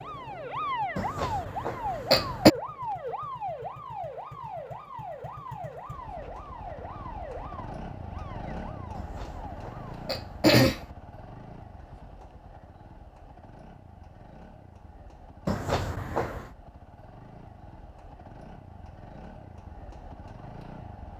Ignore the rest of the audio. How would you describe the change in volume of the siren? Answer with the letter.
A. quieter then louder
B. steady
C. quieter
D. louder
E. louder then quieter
C.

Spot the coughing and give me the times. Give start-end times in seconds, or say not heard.
0.9-2.5, 8.9-10.8, 15.4-16.5.